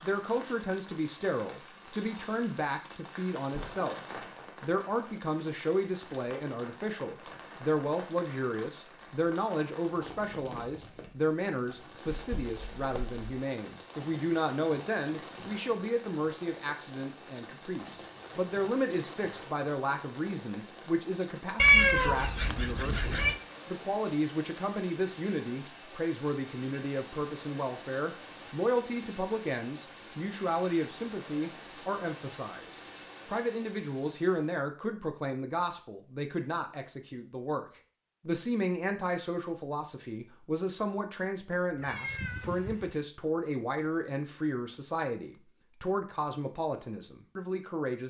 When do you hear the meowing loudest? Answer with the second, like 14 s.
22 s.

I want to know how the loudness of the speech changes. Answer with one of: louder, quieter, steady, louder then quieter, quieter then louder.
steady.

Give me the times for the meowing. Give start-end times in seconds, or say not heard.
12.1-13.2, 21.6-23.4, 41.8-43.0.